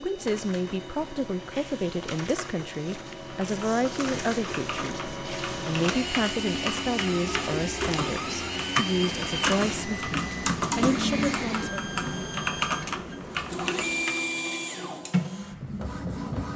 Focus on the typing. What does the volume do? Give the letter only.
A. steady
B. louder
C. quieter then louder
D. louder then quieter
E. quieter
B.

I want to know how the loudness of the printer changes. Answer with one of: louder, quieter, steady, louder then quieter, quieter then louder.
louder.